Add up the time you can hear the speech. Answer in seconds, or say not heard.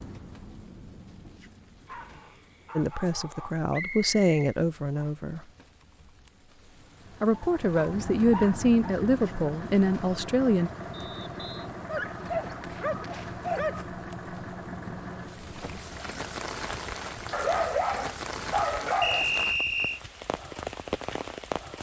6 s.